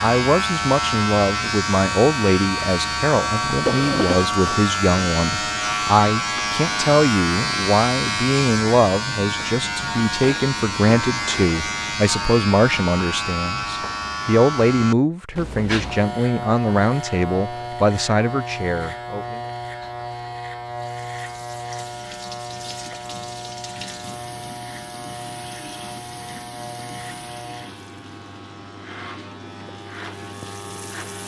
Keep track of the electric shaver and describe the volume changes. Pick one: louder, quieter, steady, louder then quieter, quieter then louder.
quieter.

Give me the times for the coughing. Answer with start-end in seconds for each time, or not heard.
3.5-4.2.